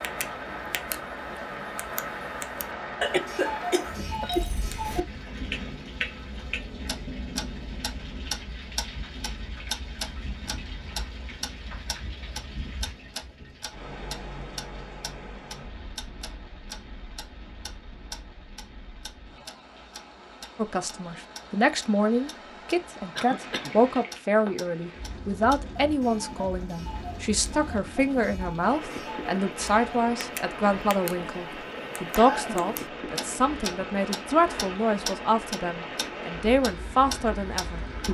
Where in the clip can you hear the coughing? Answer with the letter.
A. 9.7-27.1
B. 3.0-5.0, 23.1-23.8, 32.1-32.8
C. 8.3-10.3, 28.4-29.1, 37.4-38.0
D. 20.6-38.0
B.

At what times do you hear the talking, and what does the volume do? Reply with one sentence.
You can hear the talking from 20.6 to 38.0 s, at a steady volume.